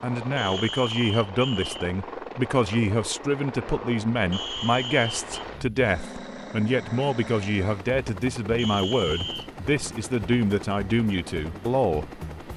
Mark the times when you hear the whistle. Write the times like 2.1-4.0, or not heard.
0.3-1.9, 4.3-5.3, 8.6-9.5.